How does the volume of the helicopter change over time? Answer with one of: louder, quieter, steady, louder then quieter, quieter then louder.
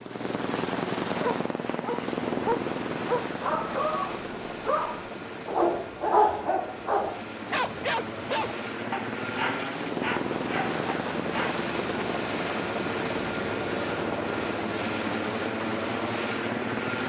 quieter then louder.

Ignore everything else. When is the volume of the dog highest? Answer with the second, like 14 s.
6 s.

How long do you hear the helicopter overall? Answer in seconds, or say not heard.
17 s.